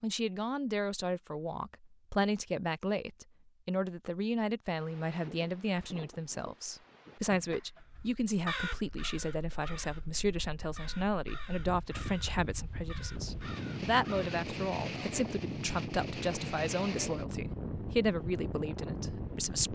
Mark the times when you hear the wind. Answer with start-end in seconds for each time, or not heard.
4.7-19.7.